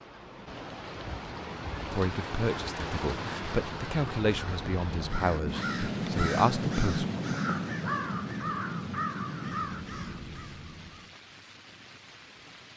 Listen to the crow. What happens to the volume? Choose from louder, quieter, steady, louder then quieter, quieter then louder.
quieter.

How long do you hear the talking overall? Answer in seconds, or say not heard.
5 s.